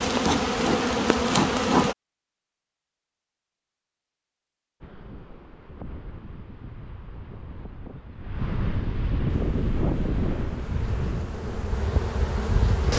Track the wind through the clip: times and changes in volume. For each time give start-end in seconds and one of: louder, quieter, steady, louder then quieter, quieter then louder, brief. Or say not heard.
4.8-12.9 louder then quieter.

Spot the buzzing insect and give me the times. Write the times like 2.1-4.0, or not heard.
0.0-1.9, 9.2-12.9.